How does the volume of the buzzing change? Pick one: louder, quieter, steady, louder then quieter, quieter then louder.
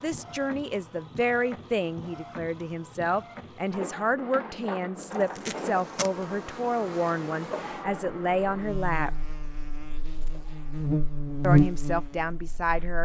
louder.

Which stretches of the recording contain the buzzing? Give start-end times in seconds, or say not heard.
5.3-13.0.